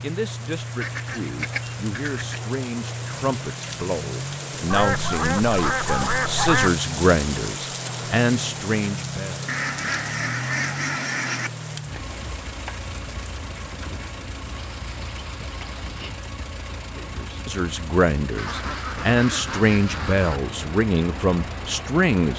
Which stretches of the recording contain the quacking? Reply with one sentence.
You can hear the quacking from 0.8 to 2.4 s, from 4.7 to 6.7 s, from 9.4 to 11.5 s, from 14.8 to 16.1 s and from 18.4 to 20.4 s.